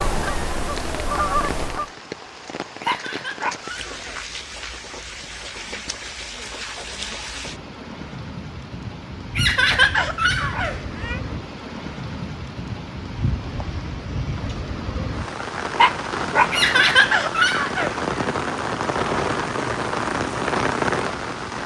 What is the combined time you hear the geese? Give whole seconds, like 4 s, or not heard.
2 s.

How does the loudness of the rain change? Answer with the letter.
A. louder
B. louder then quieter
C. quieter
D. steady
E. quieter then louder
A.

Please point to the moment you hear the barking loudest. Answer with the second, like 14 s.
16 s.